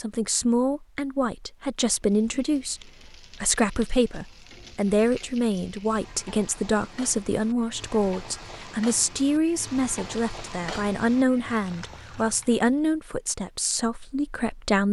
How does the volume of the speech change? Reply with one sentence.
The volume of the speech stays about the same.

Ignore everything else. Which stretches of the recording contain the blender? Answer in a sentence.
The blender can't be heard in this clip.